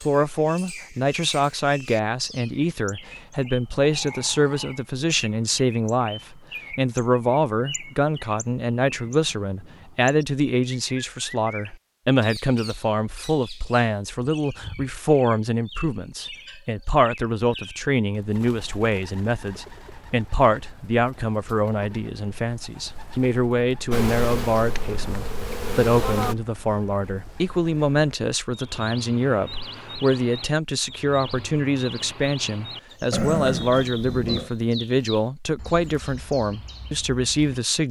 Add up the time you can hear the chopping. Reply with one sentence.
You can't hear the chopping here.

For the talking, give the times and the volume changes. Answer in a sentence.
The talking can be heard from 0.0 to 37.8 s, at a steady volume.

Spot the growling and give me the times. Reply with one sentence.
You can hear the growling from 3.8 to 4.8 s and from 33.1 to 34.5 s.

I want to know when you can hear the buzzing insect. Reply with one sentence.
You can hear the buzzing insect from 23.9 to 26.4 s.